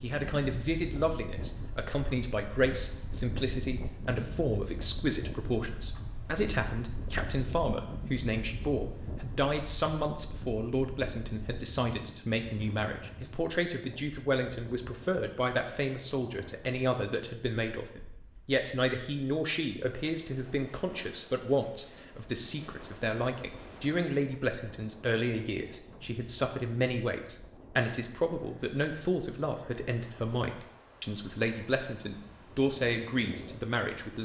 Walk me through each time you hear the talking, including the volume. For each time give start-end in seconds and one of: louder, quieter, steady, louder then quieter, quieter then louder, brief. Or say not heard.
0.0-34.2 steady.